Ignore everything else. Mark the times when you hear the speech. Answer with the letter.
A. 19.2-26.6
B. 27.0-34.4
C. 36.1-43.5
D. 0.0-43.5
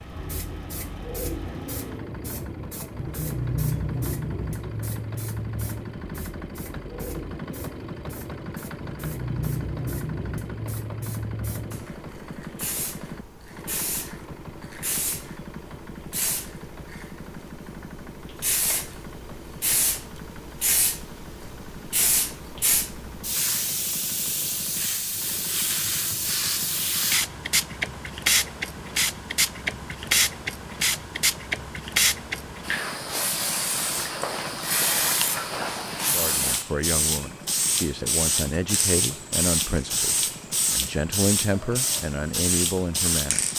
C.